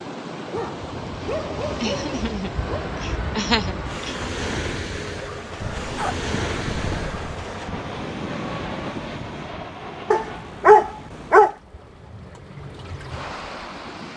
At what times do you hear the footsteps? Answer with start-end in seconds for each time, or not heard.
not heard.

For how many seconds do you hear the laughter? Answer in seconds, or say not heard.
2 s.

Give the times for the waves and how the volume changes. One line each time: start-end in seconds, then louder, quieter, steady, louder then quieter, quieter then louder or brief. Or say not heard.
0.0-14.1 quieter.